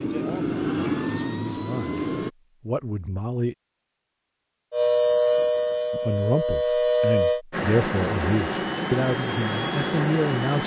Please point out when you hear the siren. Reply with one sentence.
The siren can be heard from 4.7 to 7.4 s.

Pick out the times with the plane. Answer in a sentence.
The plane can be heard from 0.0 to 2.3 s and from 7.5 to 10.6 s.